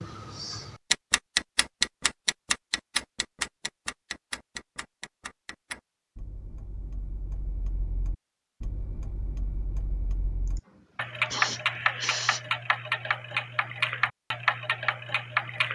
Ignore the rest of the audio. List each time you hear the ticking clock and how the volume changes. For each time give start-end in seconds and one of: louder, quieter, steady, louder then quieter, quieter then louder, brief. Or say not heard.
0.0-15.7 quieter then louder.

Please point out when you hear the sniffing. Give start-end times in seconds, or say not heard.
10.4-12.4.